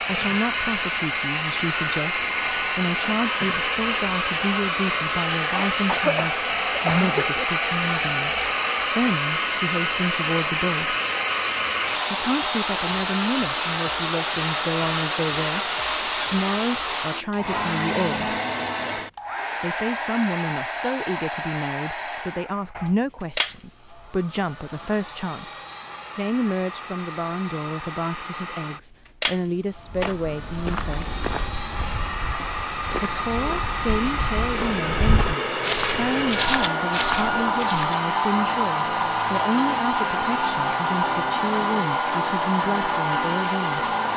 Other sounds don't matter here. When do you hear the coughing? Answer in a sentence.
You can hear the coughing from 5.5 to 7.5 s.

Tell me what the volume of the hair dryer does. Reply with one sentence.
The volume of the hair dryer goes down, then up.